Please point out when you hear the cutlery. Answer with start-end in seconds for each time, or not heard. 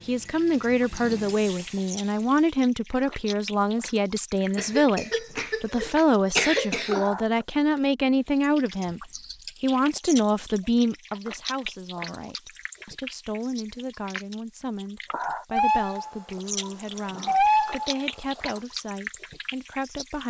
not heard.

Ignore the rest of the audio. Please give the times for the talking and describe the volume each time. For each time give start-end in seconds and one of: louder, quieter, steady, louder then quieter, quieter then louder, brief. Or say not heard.
0.1-20.2 quieter.